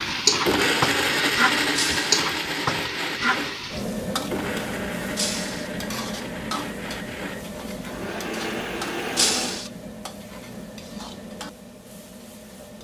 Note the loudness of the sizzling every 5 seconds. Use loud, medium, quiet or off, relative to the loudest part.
loud, medium, quiet.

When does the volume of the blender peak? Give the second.
1 s.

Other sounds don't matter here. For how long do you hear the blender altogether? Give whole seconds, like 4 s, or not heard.
10 s.